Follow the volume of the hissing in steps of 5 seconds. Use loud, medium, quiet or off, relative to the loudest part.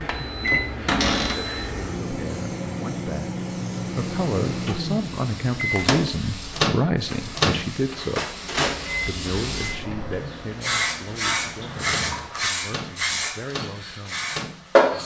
quiet, medium, loud.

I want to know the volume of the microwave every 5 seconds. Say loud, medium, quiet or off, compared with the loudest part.
loud, loud, medium.